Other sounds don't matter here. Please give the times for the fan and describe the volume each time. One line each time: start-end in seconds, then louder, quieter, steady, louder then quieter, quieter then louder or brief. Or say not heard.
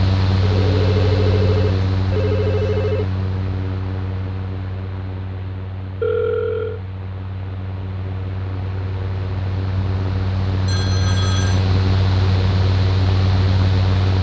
0.0-14.1 quieter then louder.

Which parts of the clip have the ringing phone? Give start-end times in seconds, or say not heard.
0.6-3.0, 6.0-6.8, 10.7-11.6.